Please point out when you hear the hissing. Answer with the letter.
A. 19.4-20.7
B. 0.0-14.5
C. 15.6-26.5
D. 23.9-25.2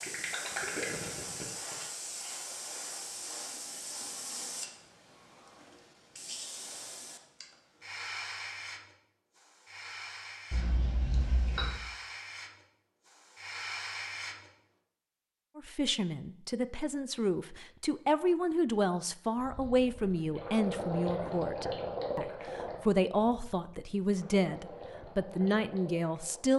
B.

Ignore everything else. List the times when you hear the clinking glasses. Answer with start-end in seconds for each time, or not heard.
10.5-11.8.